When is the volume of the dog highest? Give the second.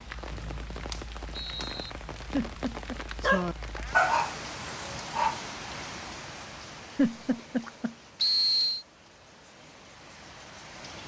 4 s.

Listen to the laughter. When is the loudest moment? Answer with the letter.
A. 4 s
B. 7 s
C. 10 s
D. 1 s
B.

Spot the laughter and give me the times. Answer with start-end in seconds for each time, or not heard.
2.3-3.0, 7.0-7.9.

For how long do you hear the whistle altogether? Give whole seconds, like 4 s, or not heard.
2 s.